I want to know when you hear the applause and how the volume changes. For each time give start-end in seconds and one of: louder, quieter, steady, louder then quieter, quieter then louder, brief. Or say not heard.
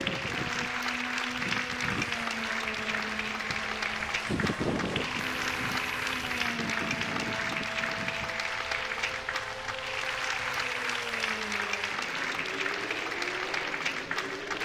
0.0-14.6 steady.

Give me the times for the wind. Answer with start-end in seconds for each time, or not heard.
0.0-8.6.